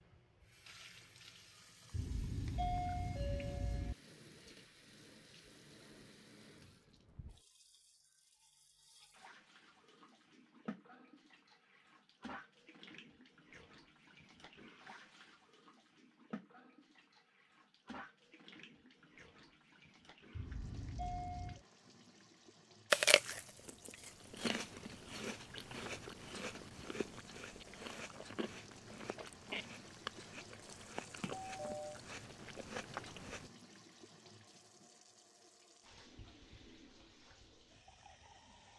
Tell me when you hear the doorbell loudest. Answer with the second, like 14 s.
3 s.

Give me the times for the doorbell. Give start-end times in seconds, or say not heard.
1.9-4.0, 20.3-21.6, 31.2-32.0.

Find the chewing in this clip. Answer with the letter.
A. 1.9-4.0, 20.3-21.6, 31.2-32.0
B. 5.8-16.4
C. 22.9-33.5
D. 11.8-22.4
C.